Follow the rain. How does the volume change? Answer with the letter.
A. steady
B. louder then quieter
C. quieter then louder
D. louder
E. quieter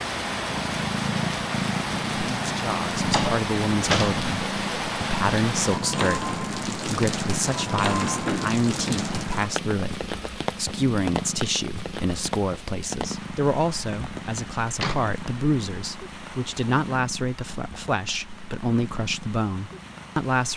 E.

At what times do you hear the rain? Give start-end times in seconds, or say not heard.
0.0-20.5.